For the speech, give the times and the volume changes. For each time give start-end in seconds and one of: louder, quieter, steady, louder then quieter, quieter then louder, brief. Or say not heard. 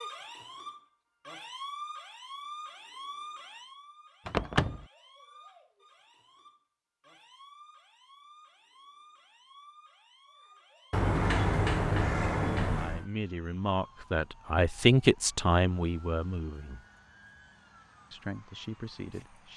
12.8-16.9 louder then quieter
18.1-19.5 brief.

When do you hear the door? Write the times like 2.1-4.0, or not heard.
4.2-4.8, 10.9-13.1.